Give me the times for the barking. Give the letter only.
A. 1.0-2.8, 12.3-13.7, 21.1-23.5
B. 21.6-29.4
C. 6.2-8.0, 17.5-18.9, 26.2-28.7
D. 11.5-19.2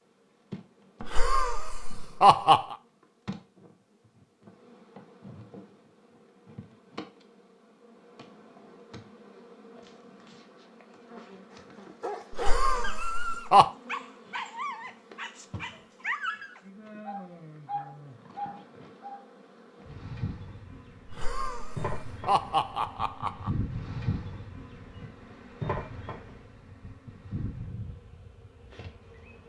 D.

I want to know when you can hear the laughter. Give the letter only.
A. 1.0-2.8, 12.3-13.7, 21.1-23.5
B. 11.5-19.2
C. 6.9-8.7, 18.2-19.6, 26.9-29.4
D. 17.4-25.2
A.